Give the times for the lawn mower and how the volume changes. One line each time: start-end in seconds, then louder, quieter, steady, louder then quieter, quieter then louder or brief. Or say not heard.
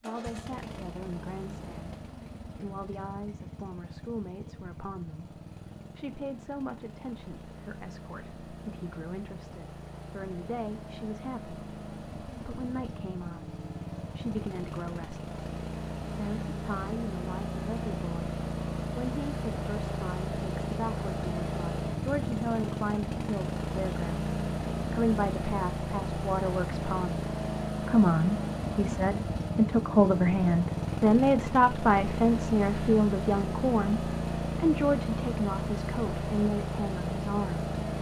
0.0-37.9 louder.